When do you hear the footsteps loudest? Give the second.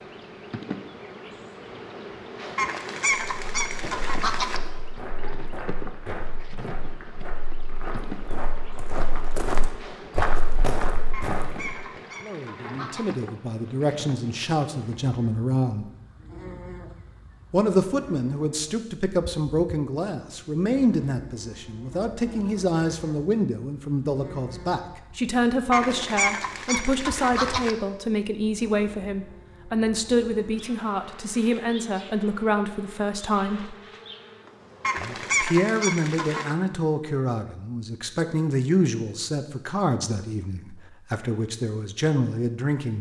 10 s.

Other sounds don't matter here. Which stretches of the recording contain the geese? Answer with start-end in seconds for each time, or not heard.
2.5-4.6, 11.1-13.2, 25.7-27.8, 34.8-36.5.